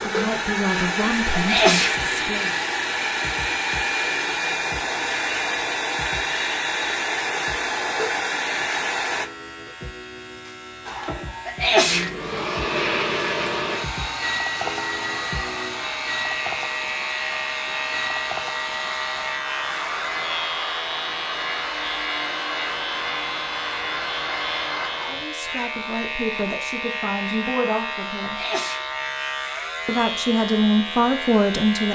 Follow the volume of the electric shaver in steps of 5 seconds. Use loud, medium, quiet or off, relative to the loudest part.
medium, medium, medium, loud, loud, loud, loud.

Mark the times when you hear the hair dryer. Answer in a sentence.
The hair dryer can be heard from 0.0 to 9.3 s and from 10.8 to 25.2 s.